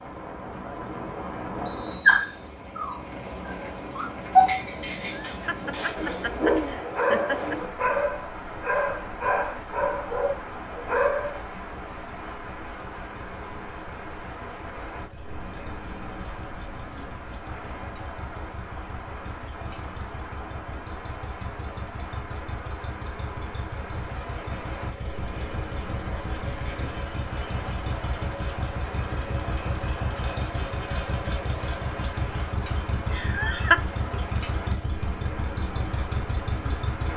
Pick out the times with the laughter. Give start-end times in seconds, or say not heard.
5.0-7.5, 33.1-33.8.